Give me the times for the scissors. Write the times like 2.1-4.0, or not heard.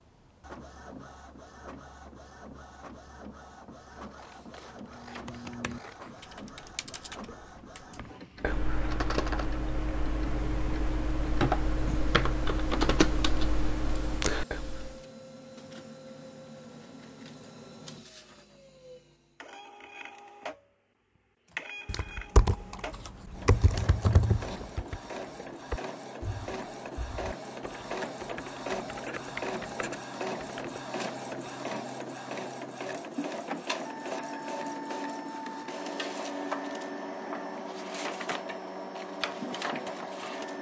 3.9-6.3.